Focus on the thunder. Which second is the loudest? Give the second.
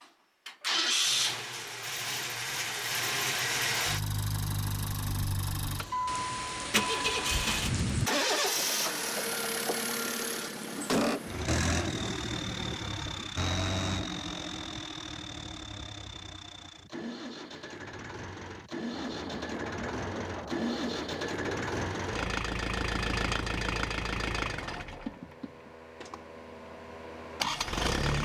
8 s.